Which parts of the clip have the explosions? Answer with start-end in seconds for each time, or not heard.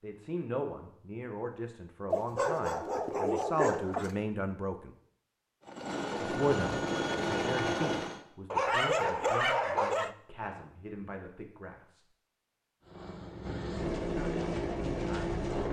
not heard.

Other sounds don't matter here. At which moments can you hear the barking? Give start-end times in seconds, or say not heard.
2.1-4.2, 8.5-10.2.